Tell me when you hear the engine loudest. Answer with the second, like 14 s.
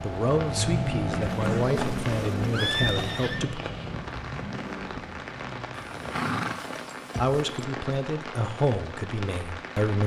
1 s.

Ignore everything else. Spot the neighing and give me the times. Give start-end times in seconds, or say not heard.
1.2-3.5, 5.7-7.7.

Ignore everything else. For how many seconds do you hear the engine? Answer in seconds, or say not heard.
6 s.